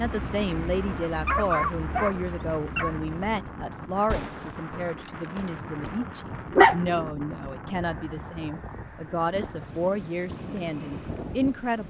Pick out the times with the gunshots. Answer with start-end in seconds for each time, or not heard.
4.1-6.0.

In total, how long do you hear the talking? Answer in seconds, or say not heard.
12 s.